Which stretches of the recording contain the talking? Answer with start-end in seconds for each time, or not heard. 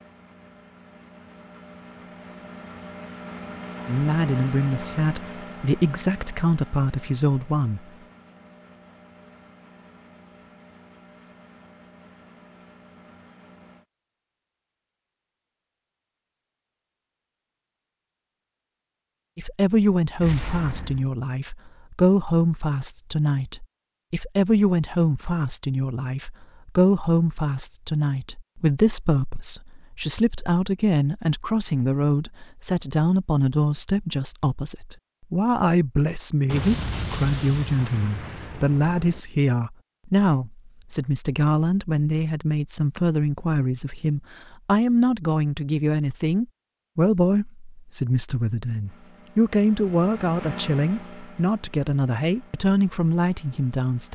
3.9-7.8, 19.4-54.0.